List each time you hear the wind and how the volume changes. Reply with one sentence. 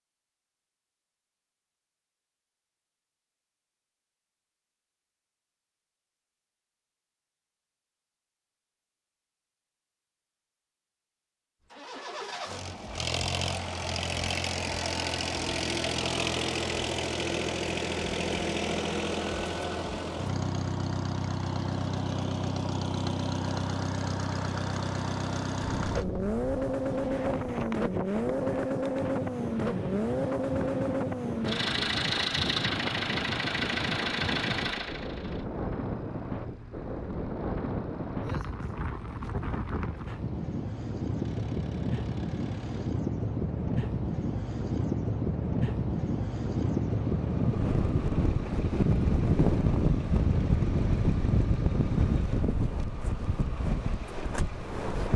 You can hear the wind from 25.6 to 55.1 s, getting louder.